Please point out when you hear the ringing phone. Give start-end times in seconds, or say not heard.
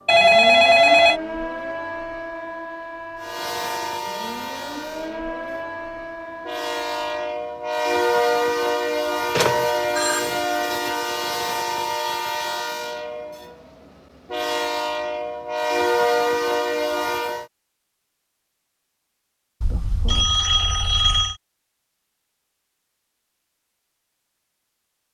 0.1-1.2, 9.3-10.3, 19.6-21.4.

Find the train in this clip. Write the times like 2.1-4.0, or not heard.
3.2-17.4.